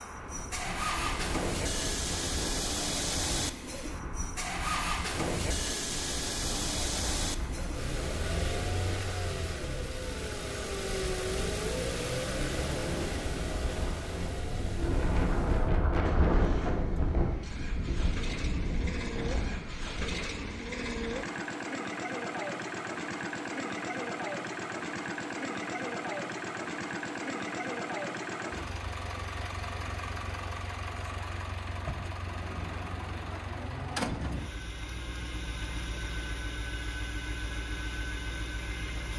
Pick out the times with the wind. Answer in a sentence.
You can hear the wind from 0.0 to 20.1 s.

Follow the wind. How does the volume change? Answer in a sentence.
The loudness of the wind goes up.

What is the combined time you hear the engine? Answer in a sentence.
The engine can be heard for 39 seconds in total.